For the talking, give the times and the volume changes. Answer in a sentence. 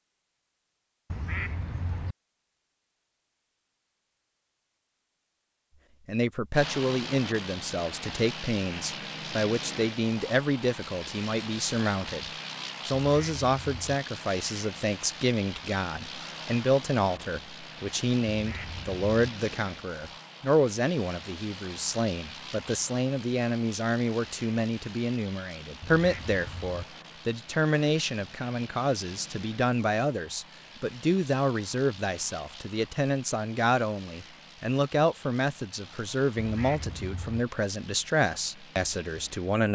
The talking can be heard from 6.0 to 39.6 s, at a steady volume.